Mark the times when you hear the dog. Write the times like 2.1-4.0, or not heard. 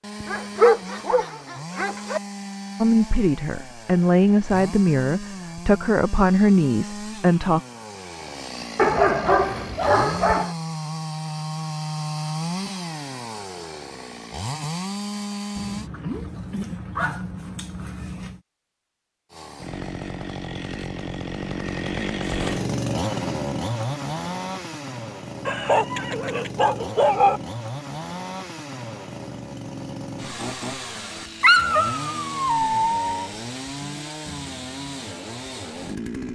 0.2-2.2, 8.8-10.5, 15.6-18.4, 25.4-27.4, 31.4-33.3.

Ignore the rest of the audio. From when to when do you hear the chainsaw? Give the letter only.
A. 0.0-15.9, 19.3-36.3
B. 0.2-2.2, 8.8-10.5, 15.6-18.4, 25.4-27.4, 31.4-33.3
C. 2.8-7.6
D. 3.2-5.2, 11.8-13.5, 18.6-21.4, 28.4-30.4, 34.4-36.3
A.